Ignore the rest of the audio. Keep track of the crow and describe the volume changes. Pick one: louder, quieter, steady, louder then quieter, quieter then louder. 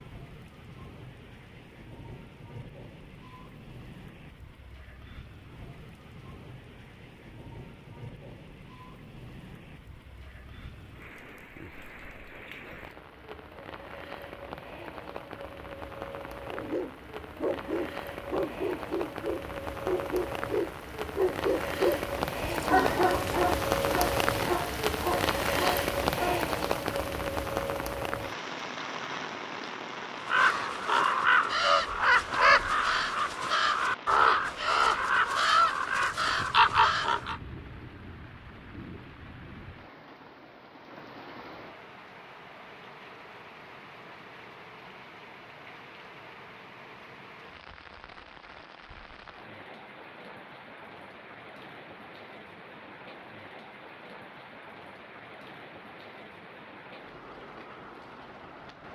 steady.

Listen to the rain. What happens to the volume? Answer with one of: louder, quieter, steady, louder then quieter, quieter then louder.
louder then quieter.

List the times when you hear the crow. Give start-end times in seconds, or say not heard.
30.1-37.4.